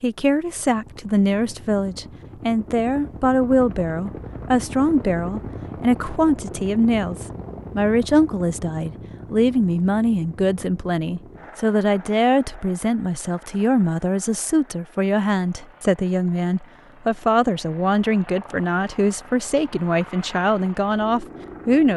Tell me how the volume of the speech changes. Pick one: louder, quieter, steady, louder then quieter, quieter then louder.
steady.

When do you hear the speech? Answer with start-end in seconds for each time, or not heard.
0.0-21.9.